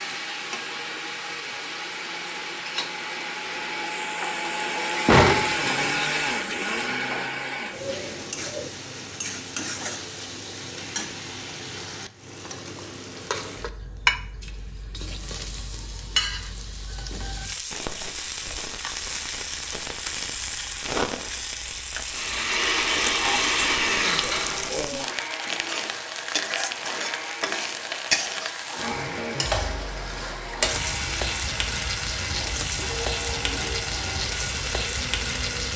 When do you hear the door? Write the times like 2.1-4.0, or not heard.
5.0-5.9.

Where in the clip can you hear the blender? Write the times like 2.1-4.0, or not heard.
0.0-8.3, 22.1-35.7.